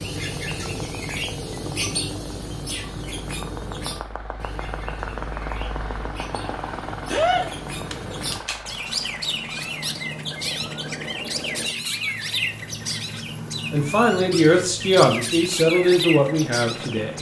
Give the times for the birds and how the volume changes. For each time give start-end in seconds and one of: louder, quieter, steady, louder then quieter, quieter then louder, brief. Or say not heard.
0.0-17.1 quieter then louder.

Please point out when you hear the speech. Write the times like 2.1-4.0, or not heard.
13.7-17.1.